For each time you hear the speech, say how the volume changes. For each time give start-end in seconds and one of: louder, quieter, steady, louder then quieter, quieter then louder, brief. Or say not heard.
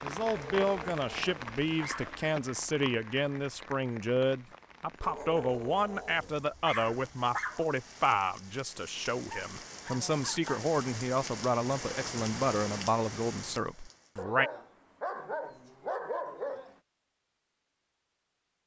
0.0-14.5 steady.